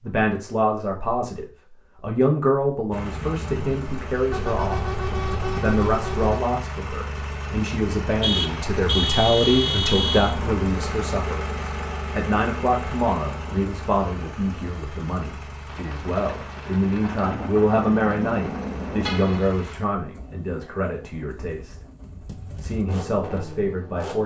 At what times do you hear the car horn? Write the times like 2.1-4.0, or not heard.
4.3-6.4, 8.2-10.3, 19.1-19.6.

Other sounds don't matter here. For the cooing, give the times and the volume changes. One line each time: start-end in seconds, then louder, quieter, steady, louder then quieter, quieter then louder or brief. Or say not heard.
not heard.